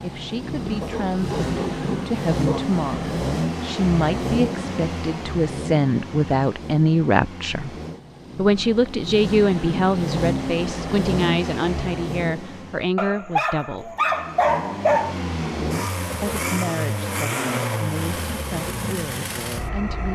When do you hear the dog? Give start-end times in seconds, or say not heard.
0.8-2.8, 12.9-15.2.